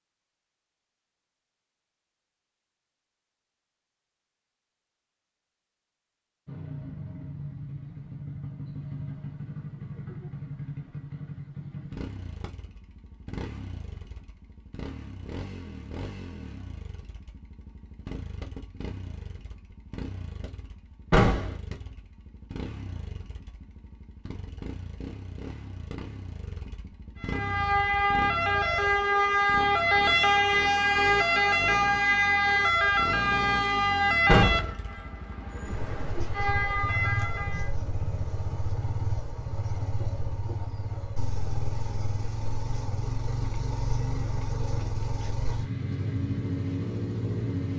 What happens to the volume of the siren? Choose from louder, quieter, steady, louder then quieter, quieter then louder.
quieter.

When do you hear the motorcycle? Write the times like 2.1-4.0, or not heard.
6.5-47.7.